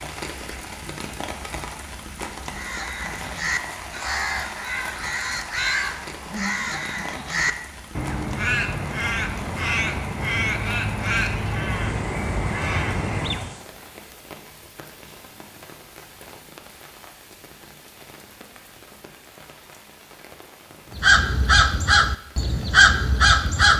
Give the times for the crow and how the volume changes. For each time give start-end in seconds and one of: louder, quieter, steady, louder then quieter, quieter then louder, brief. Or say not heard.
2.5-13.6 steady
20.9-23.7 brief.